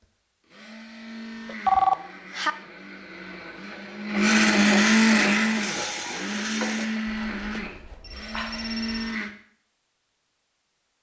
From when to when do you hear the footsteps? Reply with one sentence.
You can't hear the footsteps here.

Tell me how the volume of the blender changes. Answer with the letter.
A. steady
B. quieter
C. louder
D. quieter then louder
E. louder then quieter
E.